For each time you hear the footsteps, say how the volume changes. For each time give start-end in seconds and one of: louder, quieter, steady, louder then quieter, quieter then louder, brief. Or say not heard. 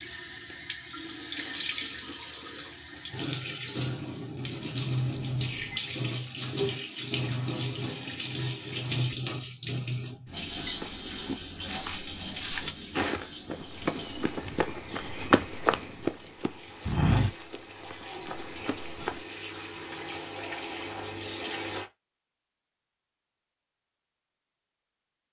10.6-19.2 louder then quieter.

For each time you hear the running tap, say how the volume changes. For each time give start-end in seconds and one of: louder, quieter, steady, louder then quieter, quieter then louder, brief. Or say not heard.
0.0-21.9 quieter then louder.